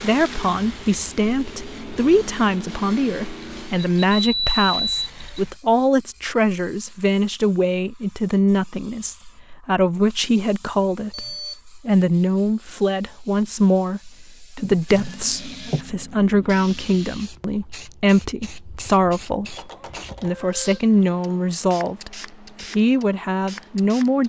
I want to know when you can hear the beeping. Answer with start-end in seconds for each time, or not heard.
4.0-5.4, 11.1-11.6, 19.5-20.8.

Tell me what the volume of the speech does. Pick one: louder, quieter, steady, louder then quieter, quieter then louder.
steady.